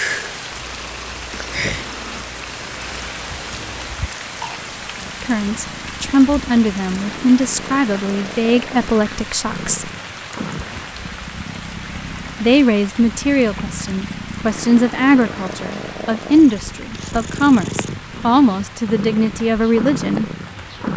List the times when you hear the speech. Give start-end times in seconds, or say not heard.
5.2-9.9, 12.4-20.2.